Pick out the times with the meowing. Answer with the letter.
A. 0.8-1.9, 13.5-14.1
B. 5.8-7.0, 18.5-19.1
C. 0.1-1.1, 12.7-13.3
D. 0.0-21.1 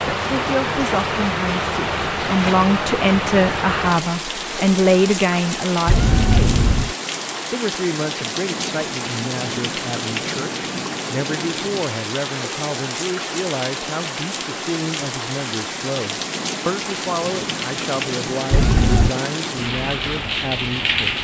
B.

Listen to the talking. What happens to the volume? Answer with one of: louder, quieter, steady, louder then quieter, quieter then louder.
quieter.